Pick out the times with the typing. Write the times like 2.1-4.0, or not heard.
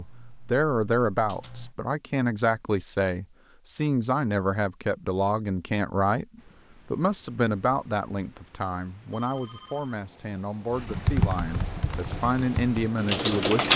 0.0-1.8, 10.8-13.7.